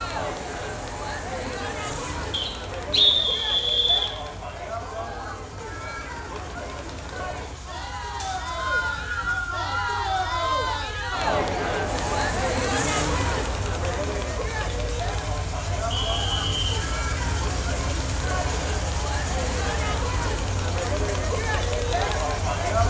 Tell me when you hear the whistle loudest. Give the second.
3 s.